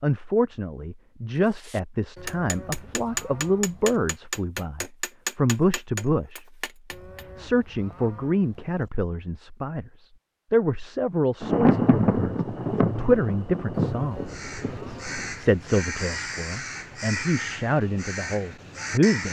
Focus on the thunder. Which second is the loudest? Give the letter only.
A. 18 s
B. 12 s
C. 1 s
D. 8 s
B.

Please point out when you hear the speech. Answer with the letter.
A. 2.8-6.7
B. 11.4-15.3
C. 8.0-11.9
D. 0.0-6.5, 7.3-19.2
D.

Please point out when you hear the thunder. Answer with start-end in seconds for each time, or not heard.
11.4-15.3.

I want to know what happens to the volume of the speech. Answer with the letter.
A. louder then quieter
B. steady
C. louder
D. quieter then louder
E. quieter
B.